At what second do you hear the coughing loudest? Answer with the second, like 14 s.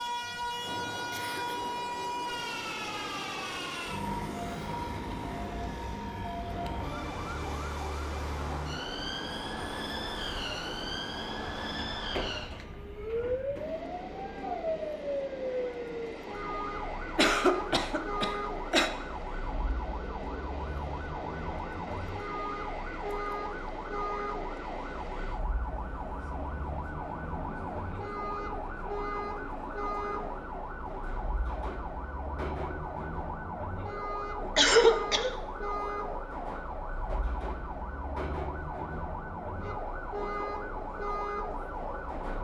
35 s.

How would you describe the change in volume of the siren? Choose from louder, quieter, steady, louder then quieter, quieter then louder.
steady.